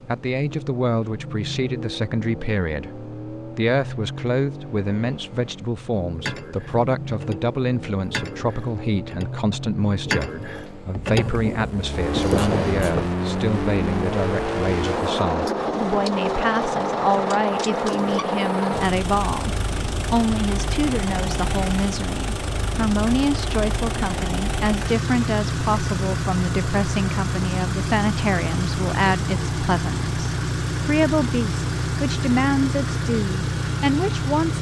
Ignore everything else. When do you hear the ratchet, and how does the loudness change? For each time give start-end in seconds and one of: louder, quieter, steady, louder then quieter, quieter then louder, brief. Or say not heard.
6.2-13.2 louder.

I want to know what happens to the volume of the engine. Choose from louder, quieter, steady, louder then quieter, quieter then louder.
louder.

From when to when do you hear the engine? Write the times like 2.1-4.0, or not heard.
0.0-34.5.